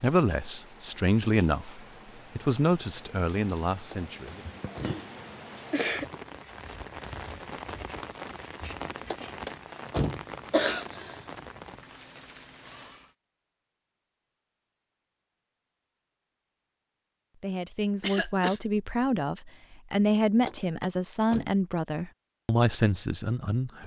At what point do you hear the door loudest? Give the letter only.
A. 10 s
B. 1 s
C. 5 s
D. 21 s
A.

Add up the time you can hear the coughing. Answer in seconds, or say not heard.
3 s.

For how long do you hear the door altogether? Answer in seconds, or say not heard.
3 s.